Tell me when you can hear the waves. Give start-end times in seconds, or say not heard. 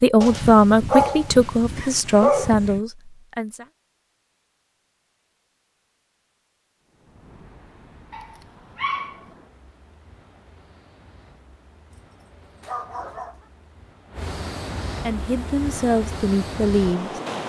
6.8-17.4.